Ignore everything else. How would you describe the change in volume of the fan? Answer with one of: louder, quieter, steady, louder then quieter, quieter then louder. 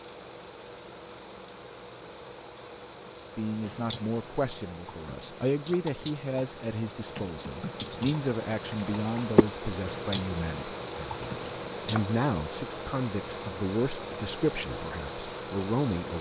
louder.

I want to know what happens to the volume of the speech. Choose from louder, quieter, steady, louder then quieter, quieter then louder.
steady.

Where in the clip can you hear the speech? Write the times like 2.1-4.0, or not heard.
3.4-16.1.